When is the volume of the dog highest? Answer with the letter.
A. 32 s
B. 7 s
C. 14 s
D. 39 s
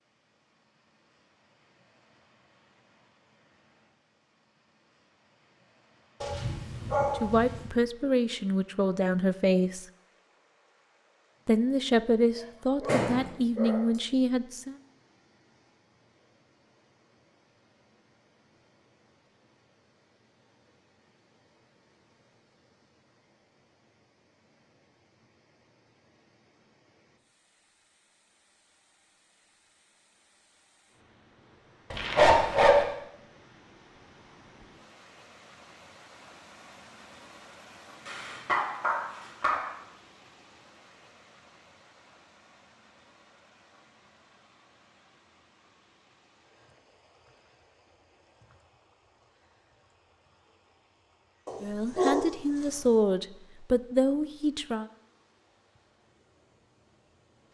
A.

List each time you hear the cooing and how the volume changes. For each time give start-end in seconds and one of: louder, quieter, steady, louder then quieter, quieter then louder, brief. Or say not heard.
not heard.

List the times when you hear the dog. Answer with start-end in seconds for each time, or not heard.
6.2-7.7, 12.8-13.8, 31.9-32.9, 38.0-39.6, 51.5-52.2.